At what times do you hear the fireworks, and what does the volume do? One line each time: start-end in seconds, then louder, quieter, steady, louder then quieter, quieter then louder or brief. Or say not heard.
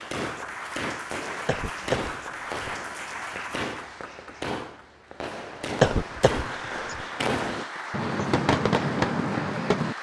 0.0-9.9 louder.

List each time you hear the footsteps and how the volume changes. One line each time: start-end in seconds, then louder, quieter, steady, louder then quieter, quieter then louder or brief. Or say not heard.
not heard.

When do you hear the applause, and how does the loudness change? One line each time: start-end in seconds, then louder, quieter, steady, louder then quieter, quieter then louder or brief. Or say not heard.
0.0-9.9 quieter then louder.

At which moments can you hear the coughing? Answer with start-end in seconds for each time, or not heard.
1.4-2.6, 5.8-7.0.